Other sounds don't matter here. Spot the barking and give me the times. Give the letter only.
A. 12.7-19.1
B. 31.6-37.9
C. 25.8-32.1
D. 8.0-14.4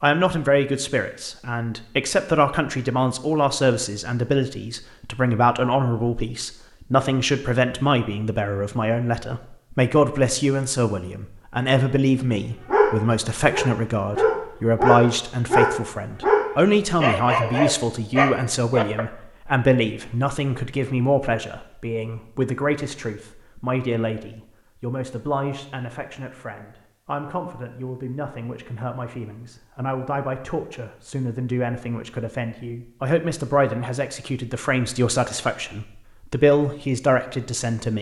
A.